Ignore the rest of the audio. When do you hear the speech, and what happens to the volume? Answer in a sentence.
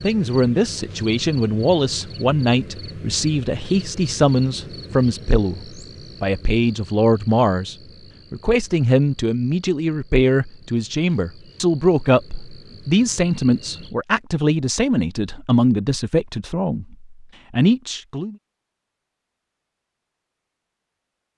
The speech can be heard from 0.0 to 18.4 s, at a steady volume.